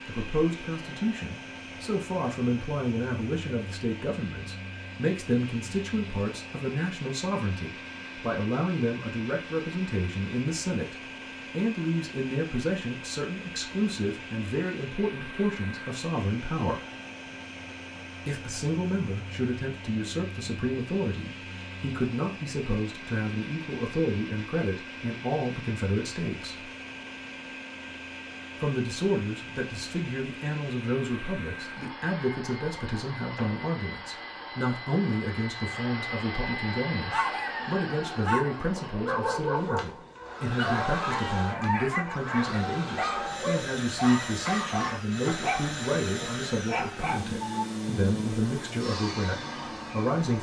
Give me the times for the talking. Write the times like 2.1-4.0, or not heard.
0.1-16.8, 18.2-26.6, 28.6-50.3.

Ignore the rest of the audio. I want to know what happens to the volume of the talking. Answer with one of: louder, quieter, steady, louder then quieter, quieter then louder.
steady.